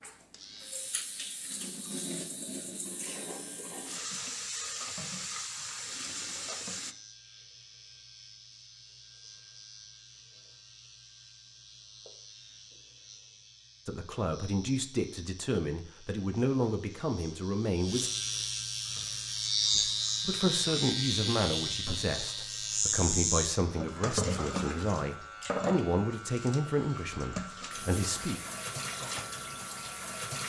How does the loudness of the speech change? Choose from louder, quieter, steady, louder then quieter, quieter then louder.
steady.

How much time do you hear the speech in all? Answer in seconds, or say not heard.
13 s.